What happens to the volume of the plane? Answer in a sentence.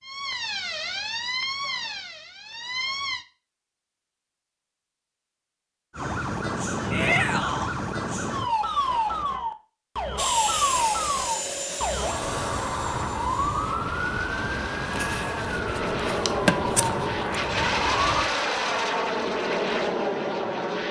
The loudness of the plane goes down, then up.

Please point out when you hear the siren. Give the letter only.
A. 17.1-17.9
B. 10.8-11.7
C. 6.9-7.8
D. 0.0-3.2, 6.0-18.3
D.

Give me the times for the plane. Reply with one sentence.
You can hear the plane from 10.2 to 20.8 s.